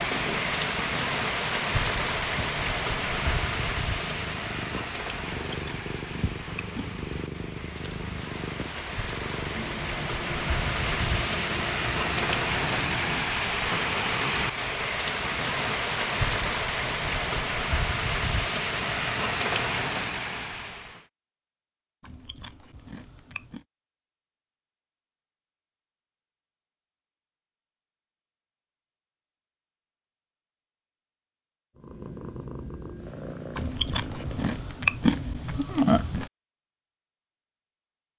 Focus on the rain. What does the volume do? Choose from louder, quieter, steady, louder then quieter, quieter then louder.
quieter then louder.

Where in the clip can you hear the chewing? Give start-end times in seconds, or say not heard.
5.5-7.0, 22.0-23.6, 33.5-36.3.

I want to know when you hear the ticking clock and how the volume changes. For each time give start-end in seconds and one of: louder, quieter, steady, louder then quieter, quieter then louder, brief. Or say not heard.
not heard.